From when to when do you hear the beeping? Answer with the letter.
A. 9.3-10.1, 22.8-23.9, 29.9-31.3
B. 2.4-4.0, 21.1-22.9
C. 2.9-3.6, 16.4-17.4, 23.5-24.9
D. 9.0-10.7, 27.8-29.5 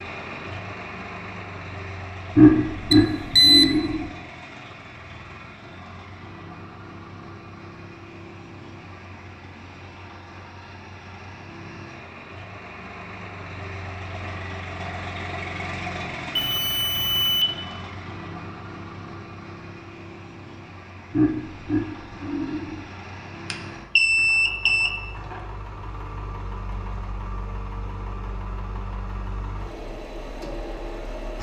C.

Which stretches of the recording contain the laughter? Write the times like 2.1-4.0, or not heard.
2.4-4.0, 21.1-22.9.